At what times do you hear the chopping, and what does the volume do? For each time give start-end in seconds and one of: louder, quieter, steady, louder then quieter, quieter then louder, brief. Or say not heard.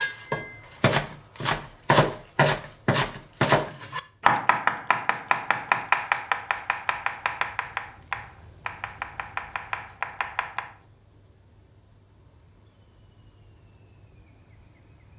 0.0-10.8 quieter.